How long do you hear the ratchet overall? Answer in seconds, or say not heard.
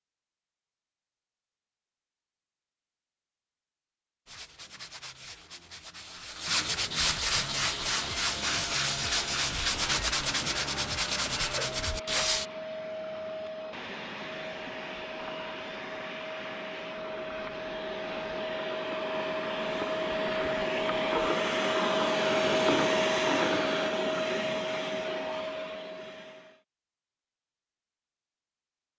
not heard.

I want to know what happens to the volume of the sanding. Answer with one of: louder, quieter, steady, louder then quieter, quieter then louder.
louder.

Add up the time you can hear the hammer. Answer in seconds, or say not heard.
not heard.